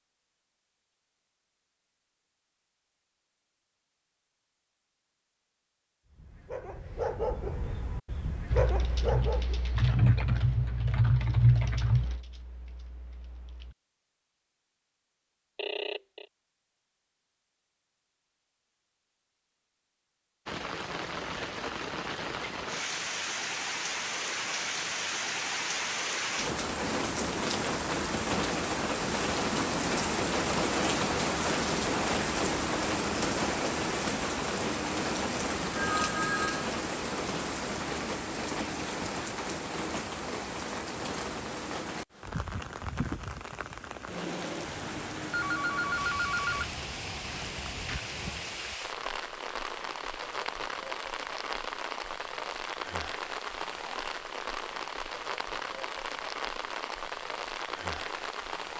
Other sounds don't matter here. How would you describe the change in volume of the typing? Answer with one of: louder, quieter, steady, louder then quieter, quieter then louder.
louder then quieter.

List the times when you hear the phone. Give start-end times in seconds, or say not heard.
15.6-16.2, 35.7-36.6, 45.3-46.8.